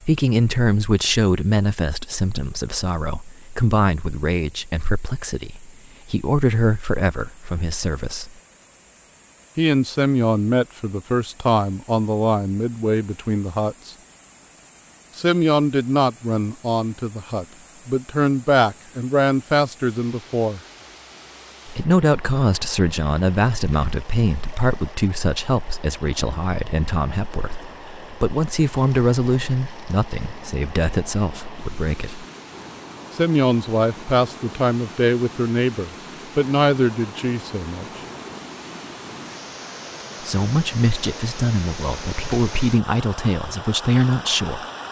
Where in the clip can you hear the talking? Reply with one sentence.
The talking can be heard from 0.1 to 8.3 s, from 9.6 to 13.9 s, from 15.2 to 20.6 s, from 21.6 to 32.2 s, from 33.1 to 37.9 s and from 40.2 to 44.6 s.